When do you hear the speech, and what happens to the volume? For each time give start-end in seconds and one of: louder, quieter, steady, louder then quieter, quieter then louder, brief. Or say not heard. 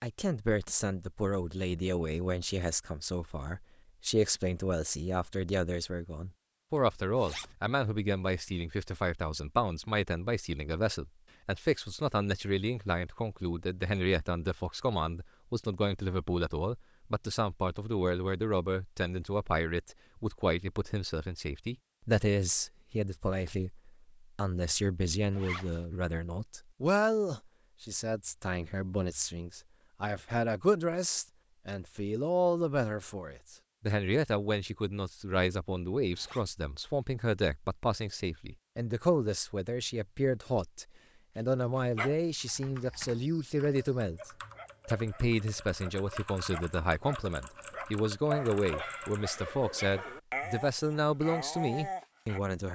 0.0-52.7 steady.